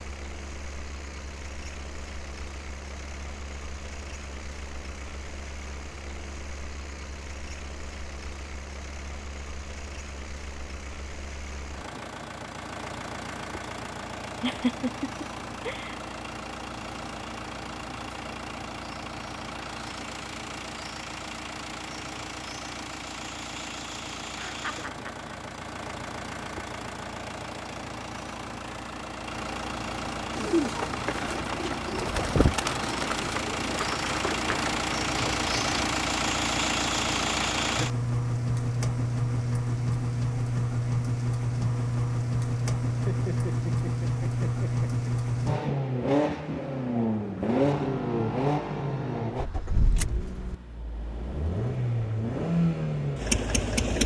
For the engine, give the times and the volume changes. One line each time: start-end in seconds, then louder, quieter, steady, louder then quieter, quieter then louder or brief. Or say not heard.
0.0-54.0 louder.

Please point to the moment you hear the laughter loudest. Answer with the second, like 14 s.
15 s.